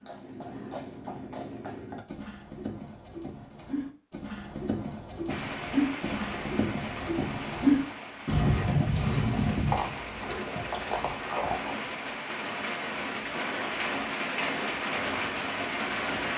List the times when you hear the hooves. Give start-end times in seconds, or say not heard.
0.0-11.8.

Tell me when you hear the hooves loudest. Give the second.
8 s.